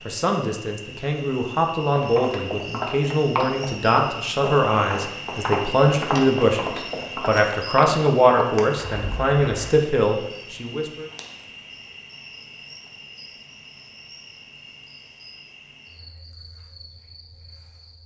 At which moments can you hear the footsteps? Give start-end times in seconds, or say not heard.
1.9-9.8.